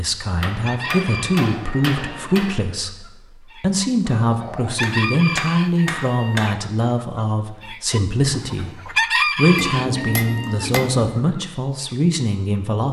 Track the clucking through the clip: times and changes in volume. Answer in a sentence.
You can hear the clucking from 0.6 to 11.9 s, getting louder then quieter.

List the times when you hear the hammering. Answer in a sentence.
You can hear the hammering from 0.4 to 2.6 s, from 4.8 to 6.5 s and from 9.6 to 11.2 s.